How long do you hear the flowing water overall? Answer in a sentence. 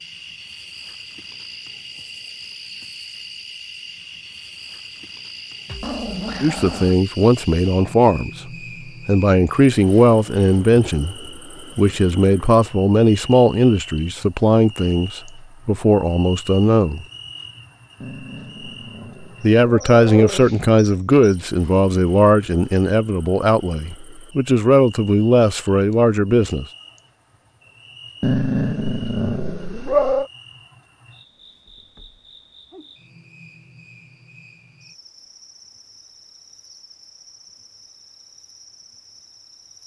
You can't hear the flowing water here.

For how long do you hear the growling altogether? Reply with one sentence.
The growling can be heard for 6 seconds in total.